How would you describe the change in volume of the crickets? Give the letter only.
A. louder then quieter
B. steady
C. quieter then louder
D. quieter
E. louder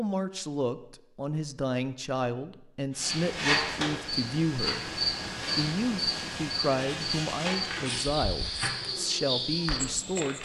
B.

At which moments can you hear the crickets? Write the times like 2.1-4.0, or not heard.
3.0-10.4.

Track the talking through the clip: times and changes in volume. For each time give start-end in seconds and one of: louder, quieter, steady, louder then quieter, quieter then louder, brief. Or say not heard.
0.0-10.4 steady.